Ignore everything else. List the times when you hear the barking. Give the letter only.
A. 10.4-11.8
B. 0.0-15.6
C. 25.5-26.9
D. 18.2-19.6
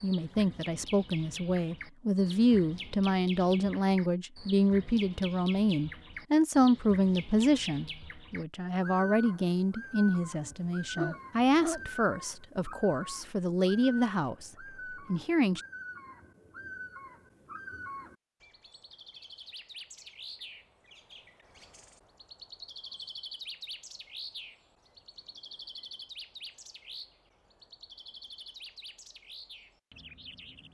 A.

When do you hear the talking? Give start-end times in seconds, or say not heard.
0.0-15.6.